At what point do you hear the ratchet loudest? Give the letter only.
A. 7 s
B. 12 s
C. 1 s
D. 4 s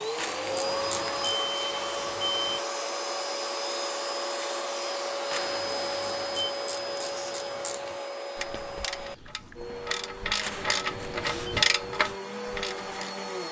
B.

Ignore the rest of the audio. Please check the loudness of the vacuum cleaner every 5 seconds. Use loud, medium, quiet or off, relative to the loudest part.
loud, loud, medium.